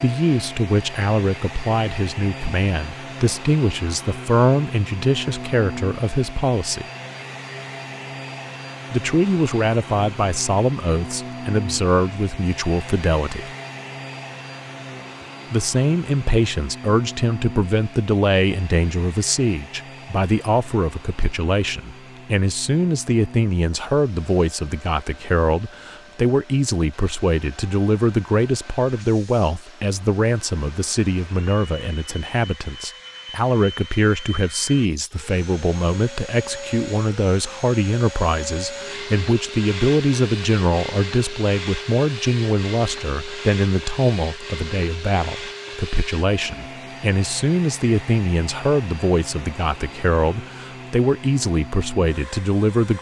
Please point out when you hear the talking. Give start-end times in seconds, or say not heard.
0.0-6.8, 8.9-13.5, 15.5-52.9.